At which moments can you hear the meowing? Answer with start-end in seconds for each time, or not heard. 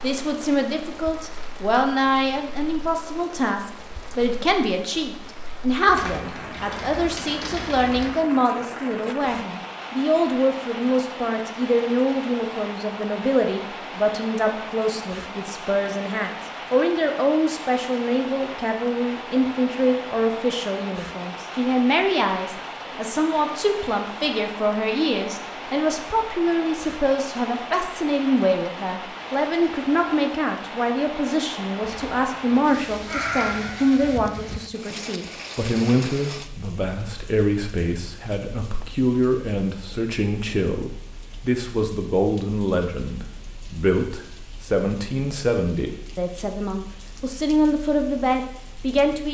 33.0-34.1.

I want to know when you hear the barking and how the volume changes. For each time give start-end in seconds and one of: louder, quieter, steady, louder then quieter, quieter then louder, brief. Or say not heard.
not heard.